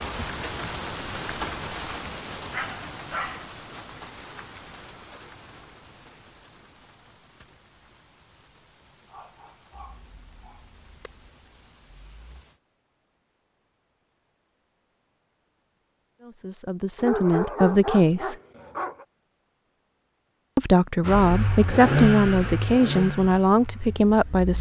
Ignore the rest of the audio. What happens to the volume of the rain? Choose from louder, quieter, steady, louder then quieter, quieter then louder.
quieter.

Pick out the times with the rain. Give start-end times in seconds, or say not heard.
0.0-12.6.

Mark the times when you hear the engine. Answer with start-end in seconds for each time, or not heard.
21.0-24.5.